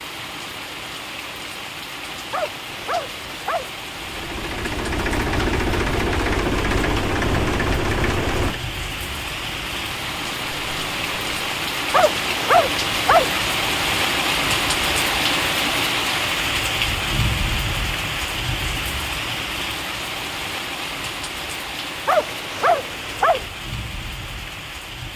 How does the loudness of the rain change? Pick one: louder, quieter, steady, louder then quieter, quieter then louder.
louder then quieter.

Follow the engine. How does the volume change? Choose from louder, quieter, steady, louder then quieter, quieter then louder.
quieter.